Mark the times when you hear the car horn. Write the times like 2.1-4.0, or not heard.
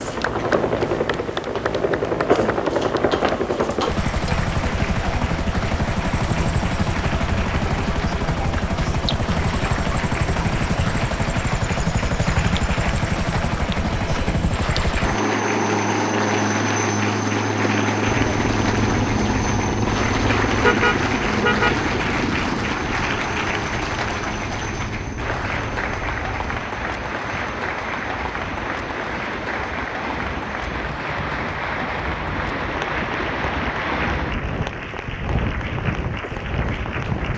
20.6-21.8.